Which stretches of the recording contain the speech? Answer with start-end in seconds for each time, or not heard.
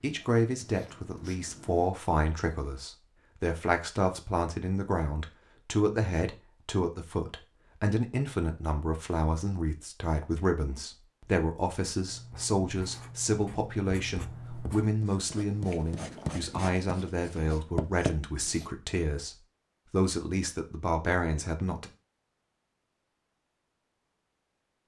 0.0-21.9.